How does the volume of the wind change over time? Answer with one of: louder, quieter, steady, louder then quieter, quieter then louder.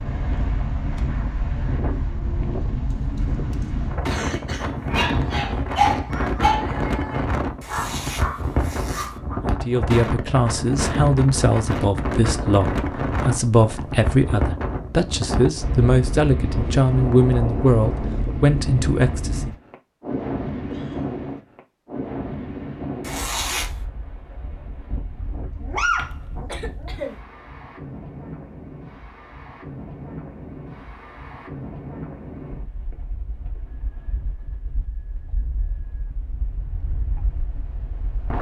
quieter.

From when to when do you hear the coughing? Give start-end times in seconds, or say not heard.
2.9-4.8, 20.7-21.2, 25.9-27.1.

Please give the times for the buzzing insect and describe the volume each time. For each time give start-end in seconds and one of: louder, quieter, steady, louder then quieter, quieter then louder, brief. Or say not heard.
not heard.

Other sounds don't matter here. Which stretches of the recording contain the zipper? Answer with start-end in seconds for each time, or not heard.
7.6-9.2, 23.0-23.8.